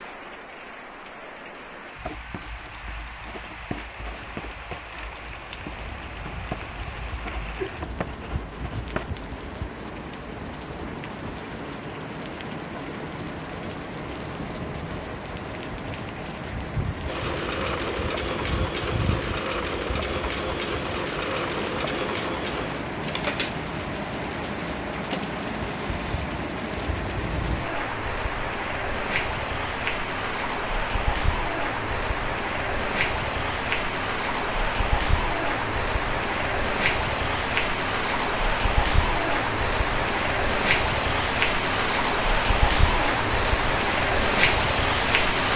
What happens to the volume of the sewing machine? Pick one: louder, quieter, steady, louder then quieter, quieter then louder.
quieter.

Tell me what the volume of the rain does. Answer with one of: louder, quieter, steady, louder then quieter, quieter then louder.
louder.